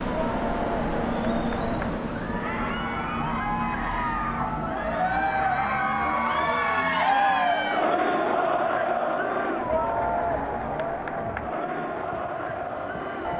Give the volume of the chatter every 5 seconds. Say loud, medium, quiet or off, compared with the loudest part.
medium, loud, medium.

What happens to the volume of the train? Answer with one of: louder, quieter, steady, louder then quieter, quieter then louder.
quieter.